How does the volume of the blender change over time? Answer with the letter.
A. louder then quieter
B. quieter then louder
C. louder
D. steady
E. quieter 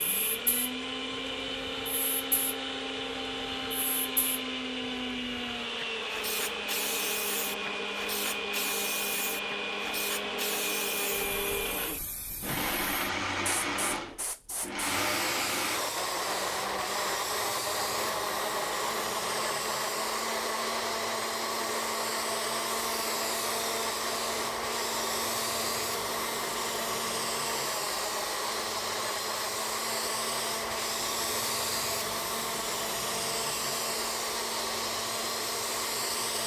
D.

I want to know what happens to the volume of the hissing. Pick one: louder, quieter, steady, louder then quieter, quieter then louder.
louder.